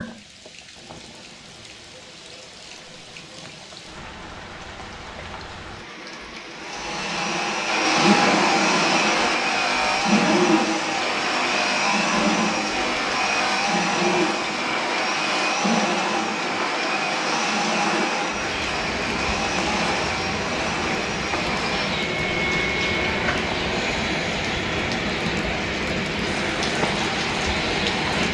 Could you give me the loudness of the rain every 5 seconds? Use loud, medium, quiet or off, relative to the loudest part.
quiet, quiet, medium, medium, loud, loud.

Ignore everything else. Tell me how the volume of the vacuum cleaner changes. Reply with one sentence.
The volume of the vacuum cleaner goes down.